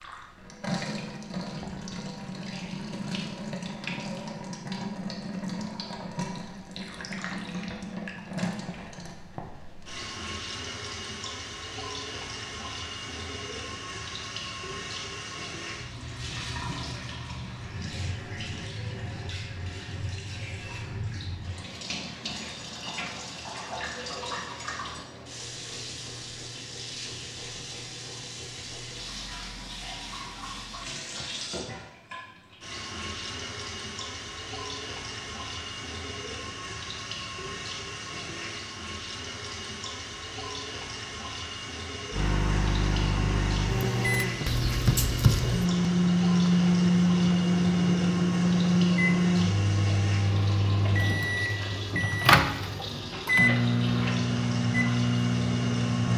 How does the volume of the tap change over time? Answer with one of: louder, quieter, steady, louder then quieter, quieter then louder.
steady.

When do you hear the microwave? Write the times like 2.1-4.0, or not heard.
42.1-56.1.